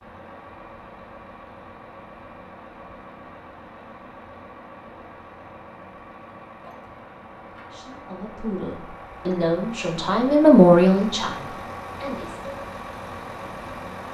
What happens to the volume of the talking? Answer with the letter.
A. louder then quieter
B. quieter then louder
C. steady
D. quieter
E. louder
A.